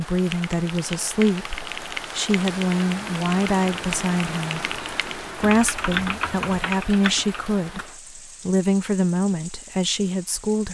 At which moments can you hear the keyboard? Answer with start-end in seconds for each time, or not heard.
0.1-7.9.